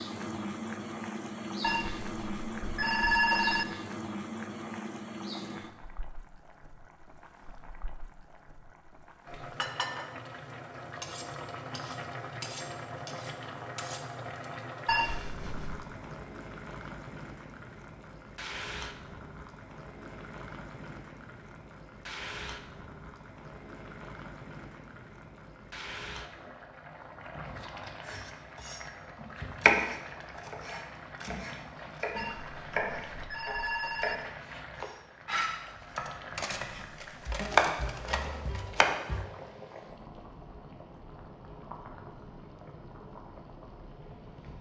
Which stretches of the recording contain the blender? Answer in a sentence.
The blender can't be heard in this clip.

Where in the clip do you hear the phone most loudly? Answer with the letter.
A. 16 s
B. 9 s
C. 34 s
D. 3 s
D.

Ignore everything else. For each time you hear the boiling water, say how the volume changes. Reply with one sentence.
The boiling water can be heard from 0.0 to 44.5 s, getting quieter.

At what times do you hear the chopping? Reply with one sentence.
You can hear the chopping from 28.1 to 28.8 s and from 29.6 to 39.2 s.